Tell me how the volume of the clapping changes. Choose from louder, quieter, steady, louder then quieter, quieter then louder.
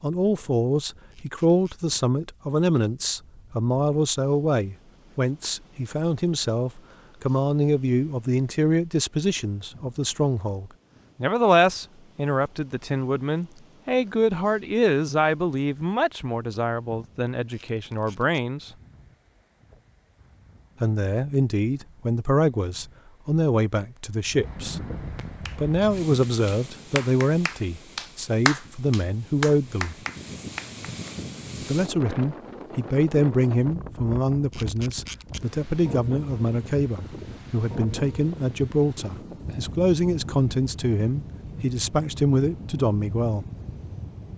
louder then quieter.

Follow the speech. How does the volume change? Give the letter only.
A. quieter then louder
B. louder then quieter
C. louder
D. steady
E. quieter
D.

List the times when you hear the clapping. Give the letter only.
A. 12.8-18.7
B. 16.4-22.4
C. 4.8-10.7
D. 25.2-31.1
D.